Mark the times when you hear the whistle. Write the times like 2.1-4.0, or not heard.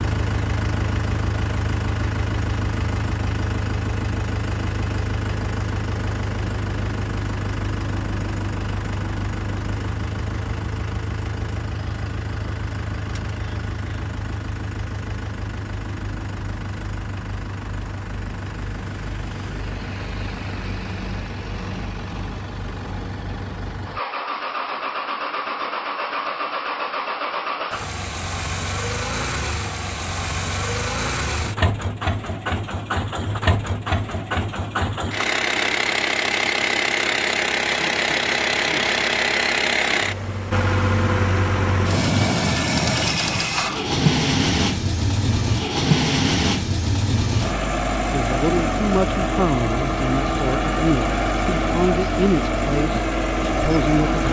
not heard.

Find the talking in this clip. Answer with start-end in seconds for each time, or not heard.
48.1-54.2.